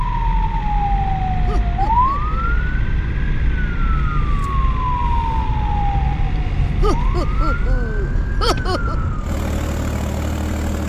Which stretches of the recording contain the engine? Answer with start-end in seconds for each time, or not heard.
0.0-10.8.